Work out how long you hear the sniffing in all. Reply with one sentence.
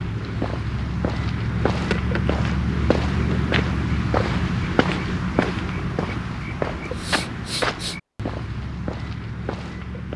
The sniffing can be heard for 2 seconds in total.